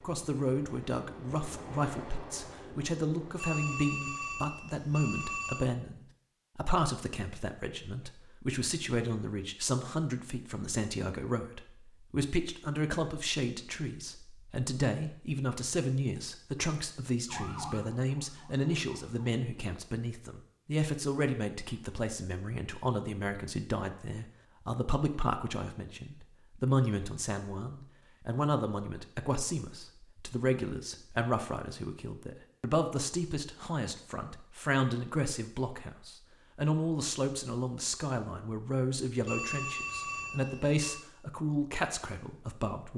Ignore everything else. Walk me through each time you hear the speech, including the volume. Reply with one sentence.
The speech can be heard from 0.0 to 42.9 s, at a steady volume.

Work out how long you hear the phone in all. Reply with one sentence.
The phone can be heard for 4 seconds in total.